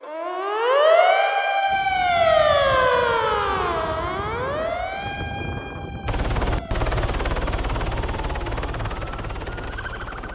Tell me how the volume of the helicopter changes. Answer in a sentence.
The loudness of the helicopter goes down.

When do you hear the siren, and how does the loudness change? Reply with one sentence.
You can hear the siren from 0.0 to 10.3 s, getting quieter.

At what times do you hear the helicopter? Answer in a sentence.
You can hear the helicopter from 6.0 to 10.3 s.